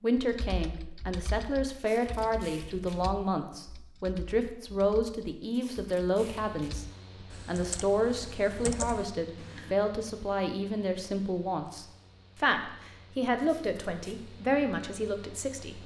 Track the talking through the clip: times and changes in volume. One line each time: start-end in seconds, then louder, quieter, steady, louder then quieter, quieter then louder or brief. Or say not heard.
0.0-15.8 steady.